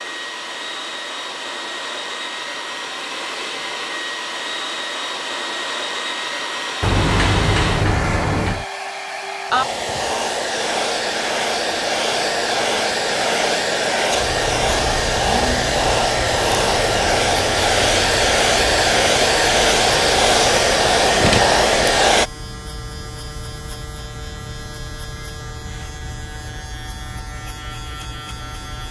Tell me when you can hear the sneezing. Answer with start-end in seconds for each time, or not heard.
not heard.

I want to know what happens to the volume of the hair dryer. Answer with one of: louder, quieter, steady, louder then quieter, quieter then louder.
louder.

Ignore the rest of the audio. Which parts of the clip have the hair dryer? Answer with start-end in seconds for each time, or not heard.
0.0-22.3.